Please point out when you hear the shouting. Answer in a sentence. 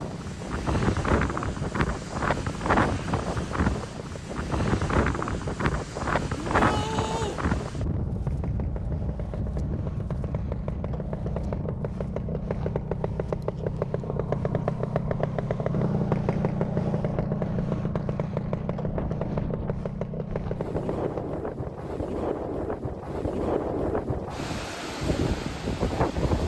The shouting can be heard from 6.3 to 7.4 s.